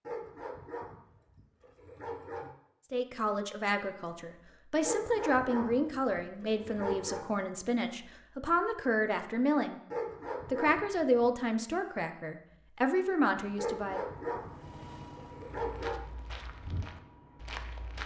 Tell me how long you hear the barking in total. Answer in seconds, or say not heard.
9 s.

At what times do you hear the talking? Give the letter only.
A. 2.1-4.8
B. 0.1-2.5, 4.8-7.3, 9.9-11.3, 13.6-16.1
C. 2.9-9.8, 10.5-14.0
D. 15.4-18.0
C.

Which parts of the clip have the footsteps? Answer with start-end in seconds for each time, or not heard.
15.4-18.0.